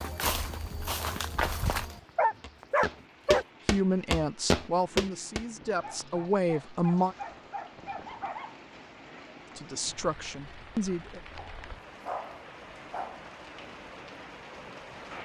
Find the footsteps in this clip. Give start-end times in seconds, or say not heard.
0.0-5.5.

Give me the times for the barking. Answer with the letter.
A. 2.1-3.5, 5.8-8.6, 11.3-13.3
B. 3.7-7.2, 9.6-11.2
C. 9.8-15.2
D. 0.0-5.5
A.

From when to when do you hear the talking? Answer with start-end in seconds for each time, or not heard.
3.7-7.2, 9.6-11.2.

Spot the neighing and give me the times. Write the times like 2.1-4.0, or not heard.
not heard.